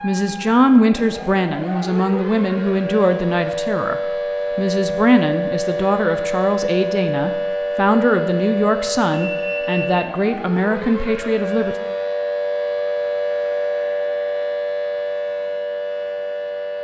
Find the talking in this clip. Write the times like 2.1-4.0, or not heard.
0.0-11.8.